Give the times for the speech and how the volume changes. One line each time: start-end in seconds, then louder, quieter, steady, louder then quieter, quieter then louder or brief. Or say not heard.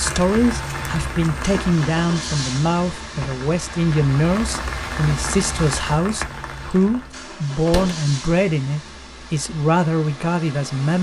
0.0-10.9 steady.